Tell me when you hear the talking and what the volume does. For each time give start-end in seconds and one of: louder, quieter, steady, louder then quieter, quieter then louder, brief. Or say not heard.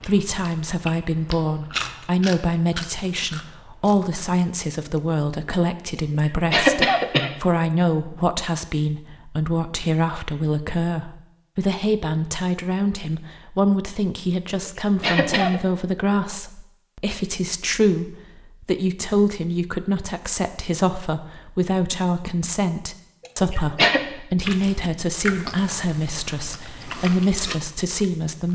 0.1-28.5 steady.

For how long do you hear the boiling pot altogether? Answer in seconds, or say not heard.
not heard.